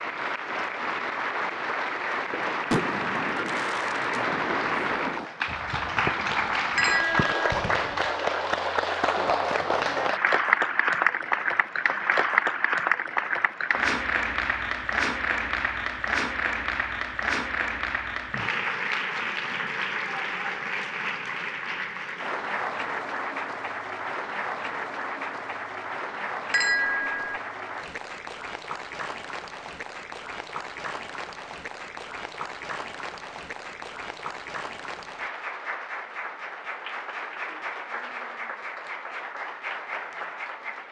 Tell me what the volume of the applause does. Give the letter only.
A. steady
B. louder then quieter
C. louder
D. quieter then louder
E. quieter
E.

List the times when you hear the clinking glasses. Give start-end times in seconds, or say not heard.
6.8-7.3, 26.5-27.4.